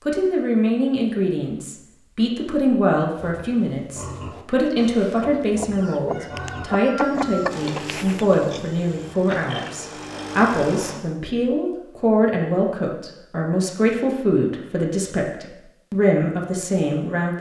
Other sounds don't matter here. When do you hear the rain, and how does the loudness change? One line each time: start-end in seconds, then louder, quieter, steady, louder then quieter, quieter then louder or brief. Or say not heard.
not heard.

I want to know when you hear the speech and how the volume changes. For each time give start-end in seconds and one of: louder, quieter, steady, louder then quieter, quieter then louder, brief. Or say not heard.
0.0-17.3 steady.